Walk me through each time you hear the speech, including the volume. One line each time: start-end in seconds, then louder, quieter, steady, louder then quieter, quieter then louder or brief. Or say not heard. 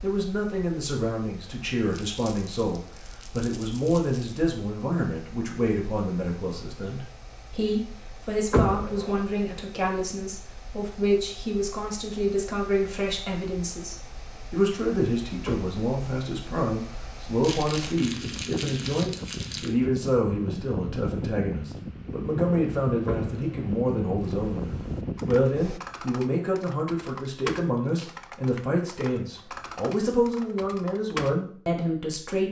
0.0-32.4 steady.